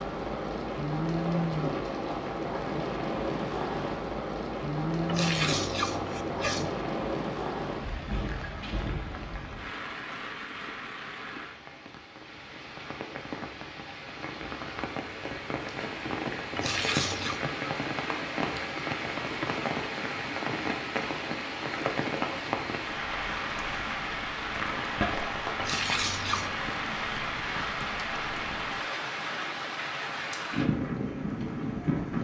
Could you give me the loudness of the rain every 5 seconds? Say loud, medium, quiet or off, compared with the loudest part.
loud, loud, medium, loud, loud, loud, loud.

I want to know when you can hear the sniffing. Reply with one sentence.
The sniffing can be heard from 5.0 to 6.8 s, from 16.6 to 17.4 s and from 25.6 to 26.6 s.